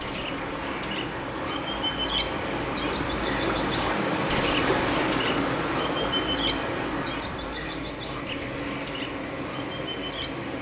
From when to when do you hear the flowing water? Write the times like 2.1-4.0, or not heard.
0.0-10.5.